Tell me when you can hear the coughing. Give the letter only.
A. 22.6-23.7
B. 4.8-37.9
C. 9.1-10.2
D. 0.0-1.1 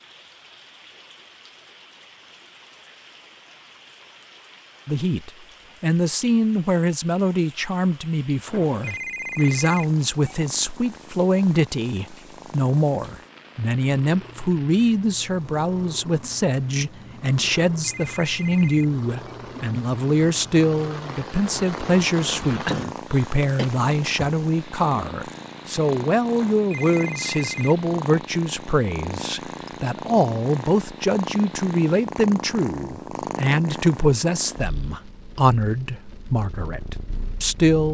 A.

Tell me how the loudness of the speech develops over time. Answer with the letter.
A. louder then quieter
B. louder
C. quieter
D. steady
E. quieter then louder
D.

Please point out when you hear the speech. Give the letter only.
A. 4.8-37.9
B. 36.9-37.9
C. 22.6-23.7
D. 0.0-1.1
A.